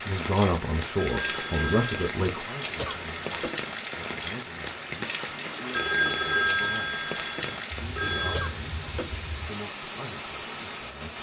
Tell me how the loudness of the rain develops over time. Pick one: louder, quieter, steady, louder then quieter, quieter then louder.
steady.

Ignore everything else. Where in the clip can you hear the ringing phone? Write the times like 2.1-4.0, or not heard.
0.9-2.1, 5.7-8.5.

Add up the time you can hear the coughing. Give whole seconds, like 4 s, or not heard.
2 s.